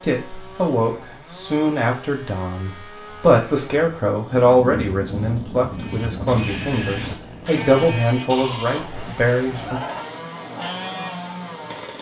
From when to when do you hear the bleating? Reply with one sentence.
You can hear the bleating from 5.8 to 11.4 s.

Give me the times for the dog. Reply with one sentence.
The dog can't be heard in this clip.